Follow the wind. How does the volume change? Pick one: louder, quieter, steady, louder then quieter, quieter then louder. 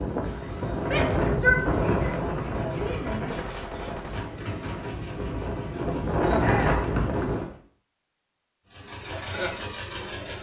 quieter then louder.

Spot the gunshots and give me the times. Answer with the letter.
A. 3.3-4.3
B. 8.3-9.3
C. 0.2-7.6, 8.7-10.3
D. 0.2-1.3
A.